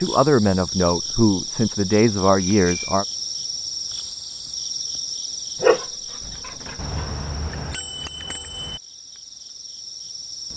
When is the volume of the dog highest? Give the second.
6 s.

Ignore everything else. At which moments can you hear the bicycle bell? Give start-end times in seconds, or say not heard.
2.5-3.0, 6.8-8.8.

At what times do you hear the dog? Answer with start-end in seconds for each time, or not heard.
5.6-7.1.